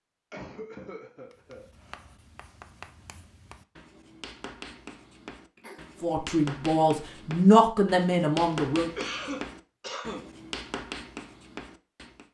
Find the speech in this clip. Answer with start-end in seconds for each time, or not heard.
6.0-8.9.